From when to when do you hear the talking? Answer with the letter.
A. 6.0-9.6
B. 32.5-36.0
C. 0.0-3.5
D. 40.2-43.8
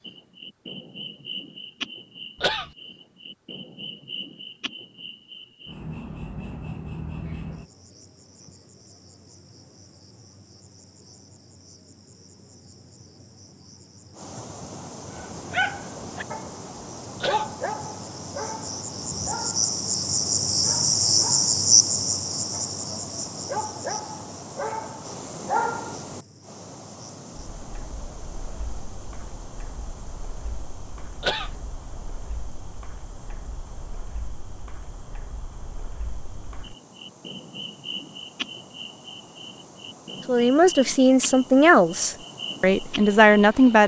D.